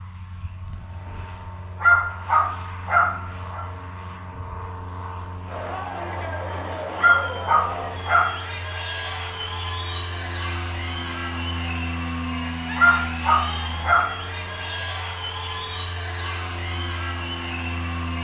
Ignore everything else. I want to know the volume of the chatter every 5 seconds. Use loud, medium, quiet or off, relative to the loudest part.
off, loud, loud, loud.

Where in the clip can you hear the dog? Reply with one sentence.
You can hear the dog from 1.8 to 3.6 s, from 7.0 to 8.3 s and from 12.8 to 14.1 s.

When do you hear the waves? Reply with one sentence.
The waves can't be heard in this clip.